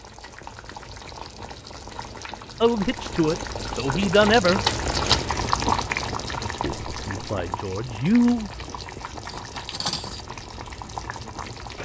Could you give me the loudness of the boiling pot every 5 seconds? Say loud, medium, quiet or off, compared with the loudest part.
loud, loud, medium.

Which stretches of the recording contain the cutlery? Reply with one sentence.
You can hear the cutlery from 9.2 to 10.2 s.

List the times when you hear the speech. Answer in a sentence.
The speech can be heard from 2.6 to 4.6 s and from 6.6 to 8.5 s.